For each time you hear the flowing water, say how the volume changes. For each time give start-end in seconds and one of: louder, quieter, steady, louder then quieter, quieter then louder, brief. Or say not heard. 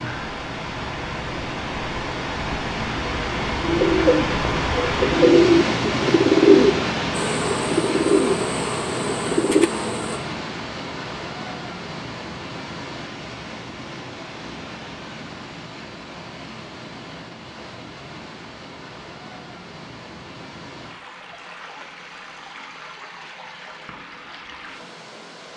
0.0-25.5 quieter.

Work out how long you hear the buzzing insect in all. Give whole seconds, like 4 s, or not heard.
3 s.